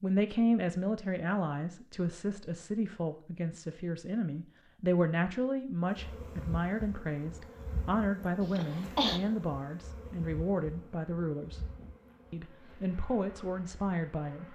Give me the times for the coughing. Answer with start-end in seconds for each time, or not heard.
8.4-9.2.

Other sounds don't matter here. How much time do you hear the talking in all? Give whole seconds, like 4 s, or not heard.
14 s.